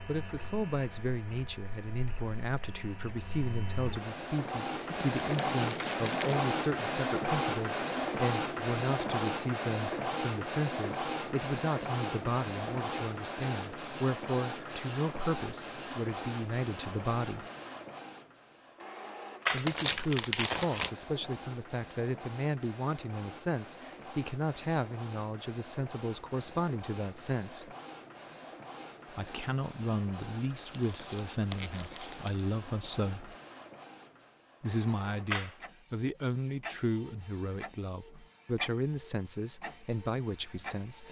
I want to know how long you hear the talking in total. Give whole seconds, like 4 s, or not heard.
36 s.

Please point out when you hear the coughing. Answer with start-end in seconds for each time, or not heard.
not heard.